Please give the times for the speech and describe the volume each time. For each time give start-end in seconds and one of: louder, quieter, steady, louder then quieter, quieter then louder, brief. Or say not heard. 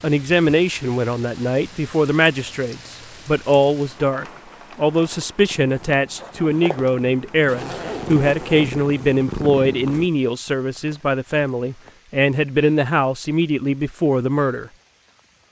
0.0-14.7 steady.